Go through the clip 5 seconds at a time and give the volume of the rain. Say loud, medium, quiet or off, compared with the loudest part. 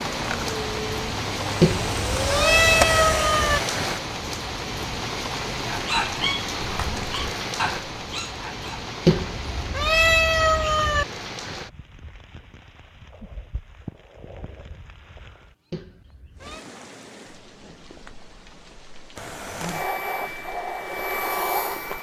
loud, loud, medium, quiet, quiet.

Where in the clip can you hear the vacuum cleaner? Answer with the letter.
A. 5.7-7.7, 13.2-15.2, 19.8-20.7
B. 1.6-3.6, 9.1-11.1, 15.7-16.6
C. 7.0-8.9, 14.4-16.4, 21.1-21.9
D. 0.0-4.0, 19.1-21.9
D.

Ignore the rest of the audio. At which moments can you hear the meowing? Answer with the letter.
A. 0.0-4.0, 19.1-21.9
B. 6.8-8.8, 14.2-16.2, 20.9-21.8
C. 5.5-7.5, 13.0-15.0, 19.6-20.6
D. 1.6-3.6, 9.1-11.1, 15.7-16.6
D.